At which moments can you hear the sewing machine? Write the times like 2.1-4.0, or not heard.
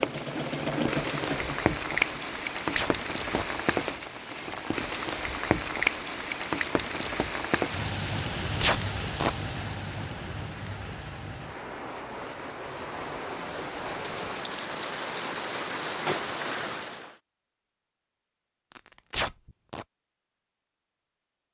0.0-2.4.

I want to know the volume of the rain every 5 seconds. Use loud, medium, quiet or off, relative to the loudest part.
loud, loud, medium, loud, off.